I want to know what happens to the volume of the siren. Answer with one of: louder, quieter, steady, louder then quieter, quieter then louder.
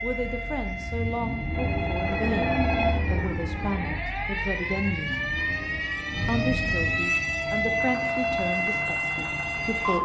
louder.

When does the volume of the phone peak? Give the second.
3 s.